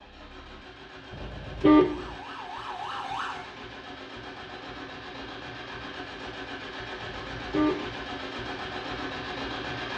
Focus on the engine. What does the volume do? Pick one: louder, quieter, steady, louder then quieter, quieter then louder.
louder.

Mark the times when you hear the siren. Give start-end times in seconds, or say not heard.
1.8-3.5.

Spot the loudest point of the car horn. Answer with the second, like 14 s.
2 s.